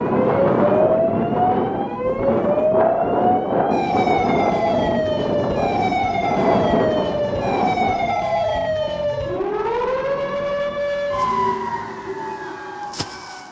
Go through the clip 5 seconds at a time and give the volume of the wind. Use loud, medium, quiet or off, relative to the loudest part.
loud, loud, off.